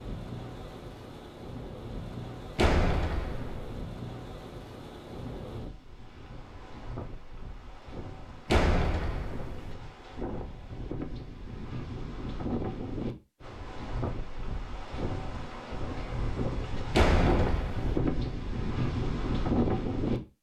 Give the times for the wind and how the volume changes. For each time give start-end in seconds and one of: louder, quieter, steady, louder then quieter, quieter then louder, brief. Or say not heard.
0.0-20.2 louder.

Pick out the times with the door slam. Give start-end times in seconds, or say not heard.
2.5-3.8, 8.4-9.8, 16.9-17.9.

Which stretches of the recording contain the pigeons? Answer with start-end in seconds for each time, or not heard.
not heard.